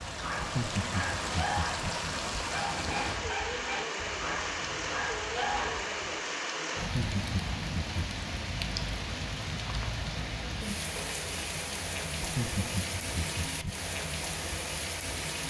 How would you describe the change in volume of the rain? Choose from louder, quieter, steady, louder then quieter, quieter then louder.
steady.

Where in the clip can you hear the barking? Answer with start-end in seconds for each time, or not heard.
0.0-6.2.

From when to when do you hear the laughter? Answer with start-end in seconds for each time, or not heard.
0.3-1.9, 6.8-8.1, 12.2-13.8.